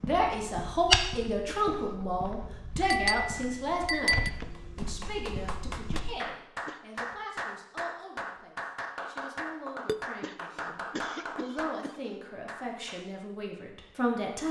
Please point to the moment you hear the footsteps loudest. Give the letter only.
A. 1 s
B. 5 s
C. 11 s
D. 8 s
A.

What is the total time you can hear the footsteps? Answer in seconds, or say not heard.
6 s.